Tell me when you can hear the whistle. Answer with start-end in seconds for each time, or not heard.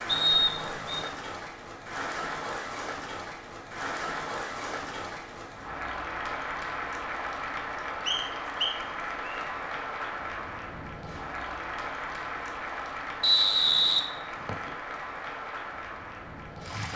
0.1-1.1, 8.1-9.4, 13.2-14.7.